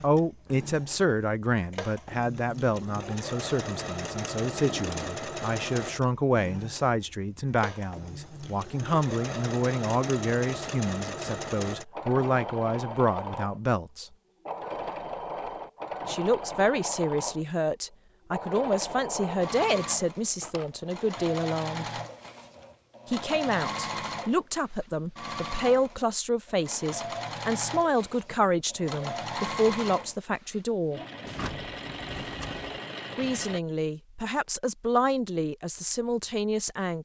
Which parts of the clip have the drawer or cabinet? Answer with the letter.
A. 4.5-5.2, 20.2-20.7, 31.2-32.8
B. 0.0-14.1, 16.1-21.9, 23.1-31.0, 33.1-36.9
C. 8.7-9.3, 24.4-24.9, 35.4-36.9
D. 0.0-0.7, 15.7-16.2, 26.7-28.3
A.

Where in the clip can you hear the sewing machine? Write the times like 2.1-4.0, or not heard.
0.0-33.6.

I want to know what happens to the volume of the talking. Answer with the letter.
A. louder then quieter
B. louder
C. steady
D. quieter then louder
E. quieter
C.